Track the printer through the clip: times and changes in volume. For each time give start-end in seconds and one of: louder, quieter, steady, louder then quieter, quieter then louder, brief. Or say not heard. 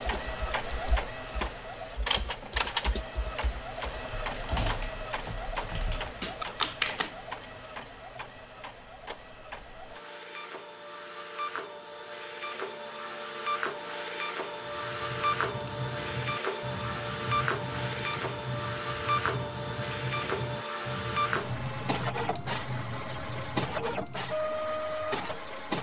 0.0-25.7 quieter then louder.